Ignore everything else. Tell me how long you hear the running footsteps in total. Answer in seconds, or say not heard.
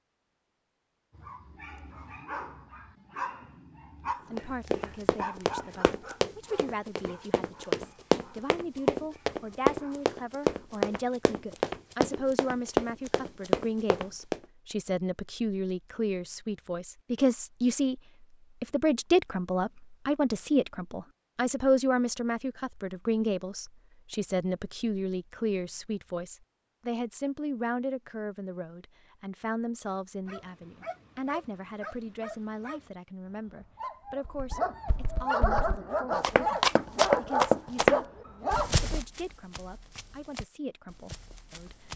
18 s.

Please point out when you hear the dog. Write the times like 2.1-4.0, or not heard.
1.1-10.1, 30.2-38.9.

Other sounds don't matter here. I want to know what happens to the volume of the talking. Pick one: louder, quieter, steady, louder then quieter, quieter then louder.
louder then quieter.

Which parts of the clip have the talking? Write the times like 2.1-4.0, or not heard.
4.3-18.0, 18.6-38.1, 38.7-41.9.